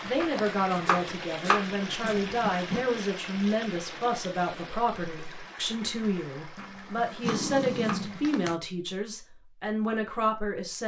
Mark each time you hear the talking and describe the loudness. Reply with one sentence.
You can hear the talking from 0.0 to 10.8 s, at a steady volume.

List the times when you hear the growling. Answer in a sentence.
You can hear the growling from 2.0 to 2.9 s and from 6.5 to 8.6 s.